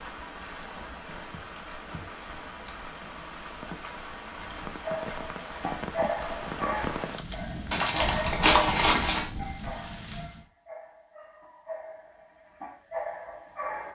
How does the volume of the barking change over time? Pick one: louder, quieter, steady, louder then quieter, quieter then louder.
quieter then louder.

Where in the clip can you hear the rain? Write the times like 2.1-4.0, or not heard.
0.0-10.5.